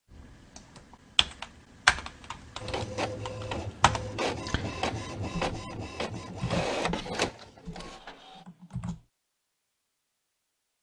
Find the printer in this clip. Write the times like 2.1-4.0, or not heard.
2.6-8.4.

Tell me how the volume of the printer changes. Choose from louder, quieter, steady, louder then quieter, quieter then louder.
steady.